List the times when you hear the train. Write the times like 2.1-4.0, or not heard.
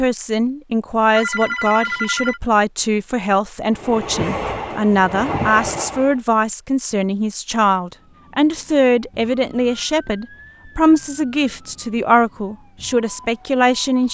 3.7-6.2.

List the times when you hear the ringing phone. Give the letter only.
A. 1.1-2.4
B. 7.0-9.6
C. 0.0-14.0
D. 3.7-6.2
A.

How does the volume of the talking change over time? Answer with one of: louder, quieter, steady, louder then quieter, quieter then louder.
steady.